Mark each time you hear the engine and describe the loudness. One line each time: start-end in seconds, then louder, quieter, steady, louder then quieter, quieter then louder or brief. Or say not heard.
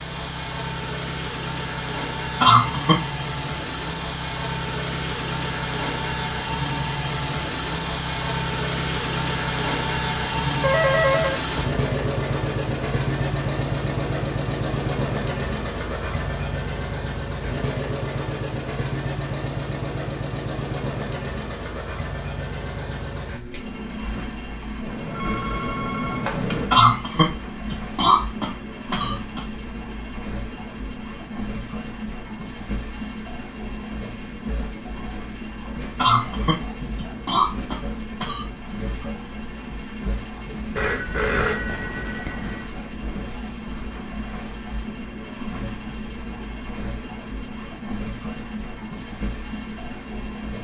0.0-50.5 quieter.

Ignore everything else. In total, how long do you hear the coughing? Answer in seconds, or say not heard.
6 s.